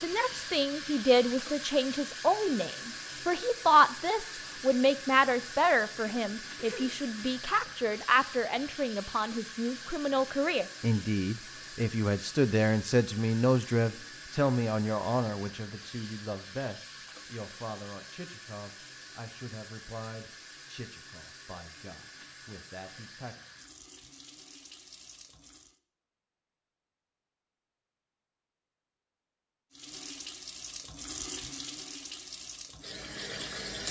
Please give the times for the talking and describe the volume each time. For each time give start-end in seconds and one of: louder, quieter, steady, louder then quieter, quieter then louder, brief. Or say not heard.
0.0-23.4 quieter.